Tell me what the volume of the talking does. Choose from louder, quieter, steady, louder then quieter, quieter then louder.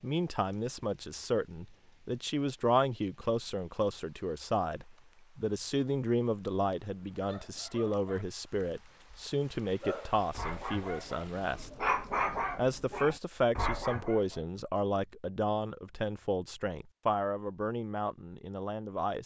steady.